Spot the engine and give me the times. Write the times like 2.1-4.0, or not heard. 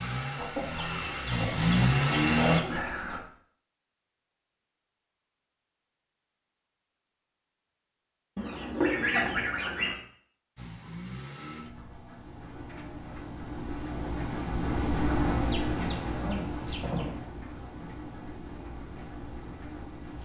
0.0-2.6, 10.6-20.2.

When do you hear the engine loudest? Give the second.
2 s.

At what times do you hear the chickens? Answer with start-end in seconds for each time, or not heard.
0.3-3.2, 8.3-10.0, 15.4-17.1.